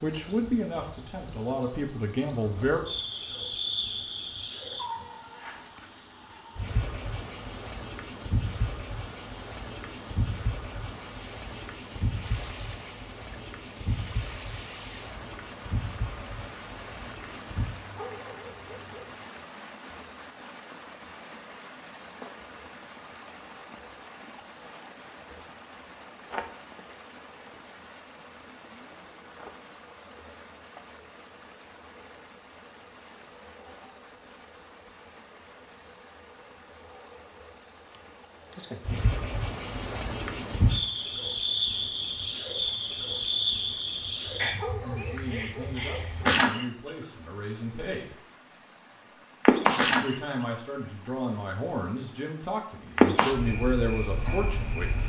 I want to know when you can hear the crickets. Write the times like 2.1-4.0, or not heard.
0.0-55.0.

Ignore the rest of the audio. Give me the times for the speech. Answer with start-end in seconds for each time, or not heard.
0.0-2.9, 44.8-48.2, 50.0-55.0.